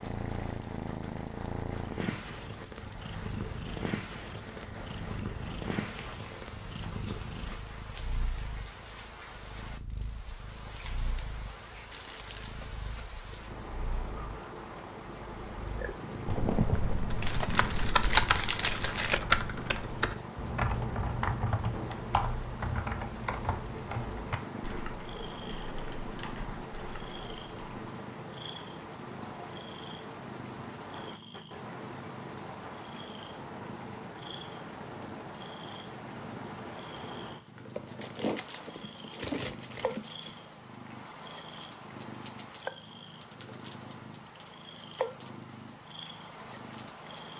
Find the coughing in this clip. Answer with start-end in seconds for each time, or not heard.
not heard.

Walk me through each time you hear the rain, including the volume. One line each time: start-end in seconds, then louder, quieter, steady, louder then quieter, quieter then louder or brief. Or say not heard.
0.0-47.3 steady.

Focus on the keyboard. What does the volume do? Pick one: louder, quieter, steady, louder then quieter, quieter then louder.
quieter.